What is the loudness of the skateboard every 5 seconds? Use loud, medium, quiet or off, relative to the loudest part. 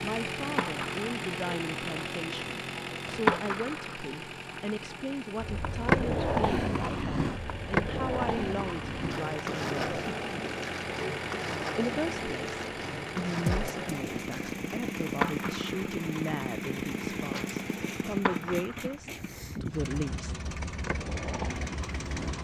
loud, loud, medium, medium, medium.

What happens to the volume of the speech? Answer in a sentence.
The loudness of the speech stays about the same.